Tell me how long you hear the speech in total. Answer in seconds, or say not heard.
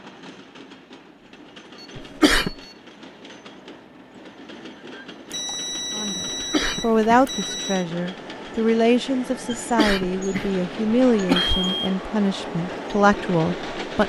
8 s.